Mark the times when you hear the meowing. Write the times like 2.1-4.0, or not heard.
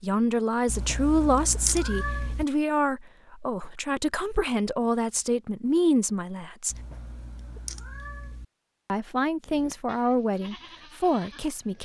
0.7-2.5, 6.7-8.4.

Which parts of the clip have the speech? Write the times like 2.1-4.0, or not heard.
0.0-6.8, 8.8-11.8.